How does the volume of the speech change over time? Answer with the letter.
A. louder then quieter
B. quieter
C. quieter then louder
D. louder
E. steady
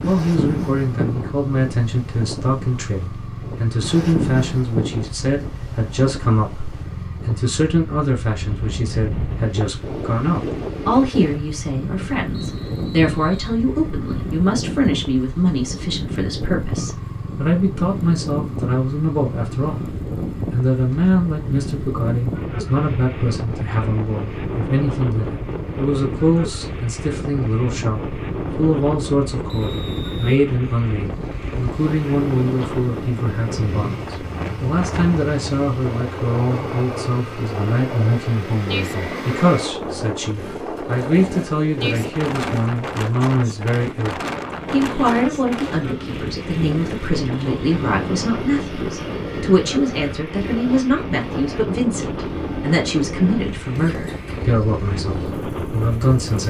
E.